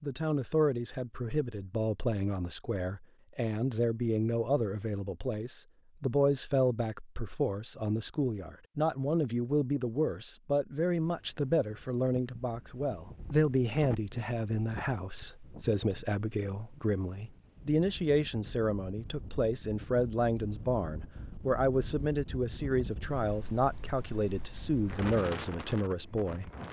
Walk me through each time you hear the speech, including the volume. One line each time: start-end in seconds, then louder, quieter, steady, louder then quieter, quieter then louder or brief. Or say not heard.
0.0-26.5 steady.